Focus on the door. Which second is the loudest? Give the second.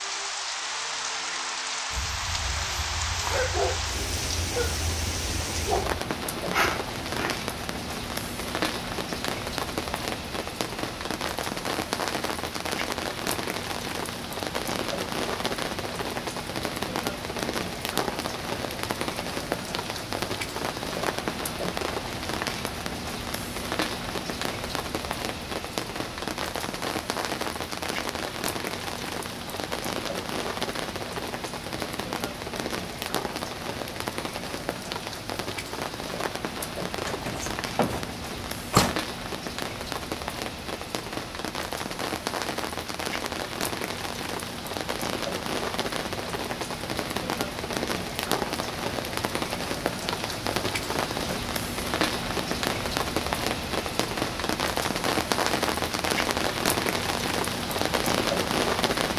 39 s.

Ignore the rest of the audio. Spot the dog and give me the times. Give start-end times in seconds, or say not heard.
1.9-7.3.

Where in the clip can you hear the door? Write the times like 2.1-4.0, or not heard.
36.9-39.0.